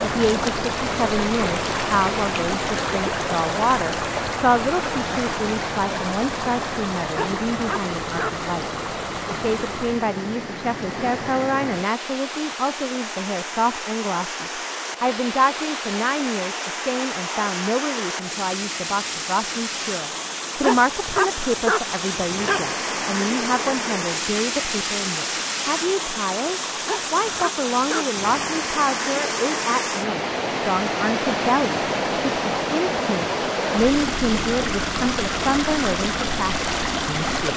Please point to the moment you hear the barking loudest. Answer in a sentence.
The volume of the barking peaks at 22 seconds.